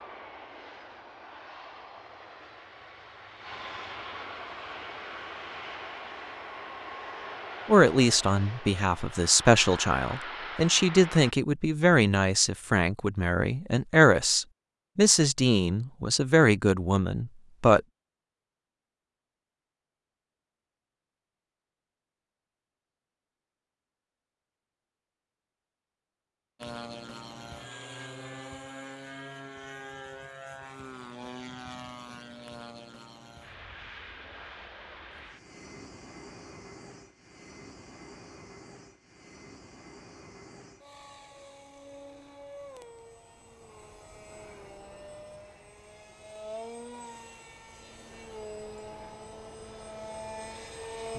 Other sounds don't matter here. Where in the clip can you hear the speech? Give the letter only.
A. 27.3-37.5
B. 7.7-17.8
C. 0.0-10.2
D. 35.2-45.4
B.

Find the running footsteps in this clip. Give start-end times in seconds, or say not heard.
not heard.